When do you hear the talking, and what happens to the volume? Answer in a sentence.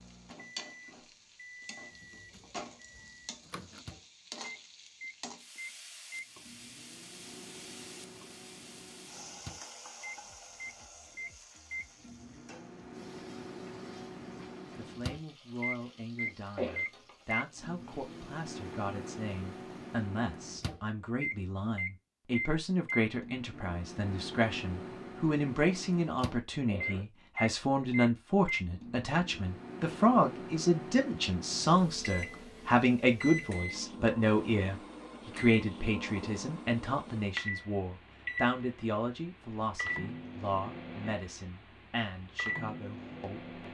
You can hear the talking from 14.8 to 43.5 s, getting louder then quieter.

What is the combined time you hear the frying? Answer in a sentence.
You can hear the frying for 20 seconds altogether.